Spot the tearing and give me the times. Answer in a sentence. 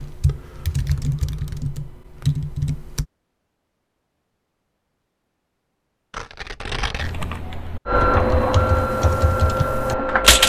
The tearing can be heard from 6.1 to 7.2 s.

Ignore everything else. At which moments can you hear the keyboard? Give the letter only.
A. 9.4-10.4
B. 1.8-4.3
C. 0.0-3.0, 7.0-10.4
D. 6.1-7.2
C.